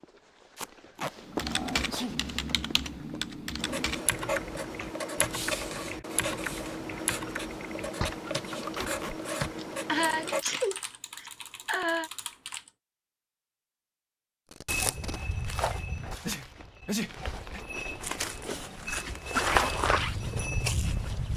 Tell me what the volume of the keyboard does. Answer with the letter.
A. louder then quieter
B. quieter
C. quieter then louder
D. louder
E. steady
B.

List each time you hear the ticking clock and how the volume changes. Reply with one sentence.
The ticking clock can't be heard in this clip.